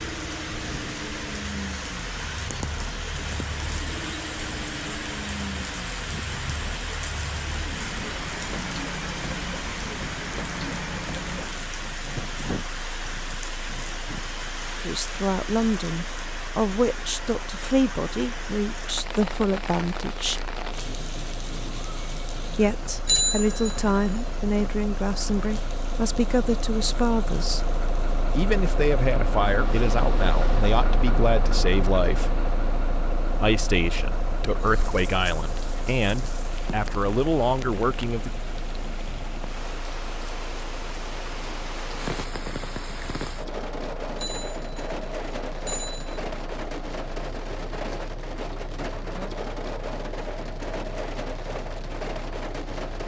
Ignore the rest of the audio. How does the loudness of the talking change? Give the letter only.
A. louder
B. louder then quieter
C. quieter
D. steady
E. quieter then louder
D.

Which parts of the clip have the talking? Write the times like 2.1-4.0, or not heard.
14.8-20.5, 22.5-27.7, 28.4-32.4, 33.4-38.3.